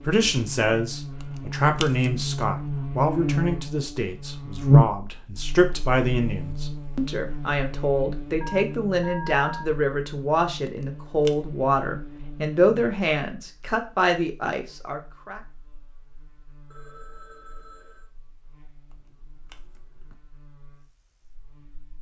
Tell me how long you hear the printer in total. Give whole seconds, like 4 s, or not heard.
not heard.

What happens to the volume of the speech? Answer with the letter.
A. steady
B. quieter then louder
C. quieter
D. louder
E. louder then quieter
A.